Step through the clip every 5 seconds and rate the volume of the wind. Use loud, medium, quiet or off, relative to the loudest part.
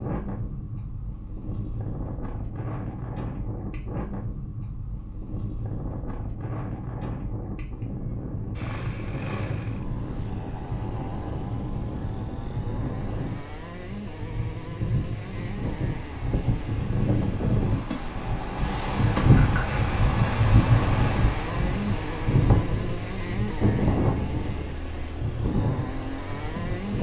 medium, medium, medium, loud, loud, medium.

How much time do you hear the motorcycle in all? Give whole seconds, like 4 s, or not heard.
18 s.